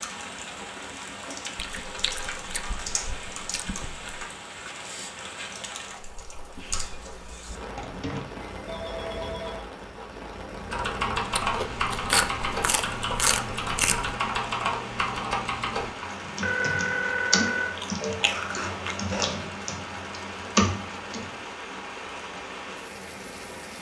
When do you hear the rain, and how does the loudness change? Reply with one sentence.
The rain can be heard from 0.0 to 23.7 s, at a steady volume.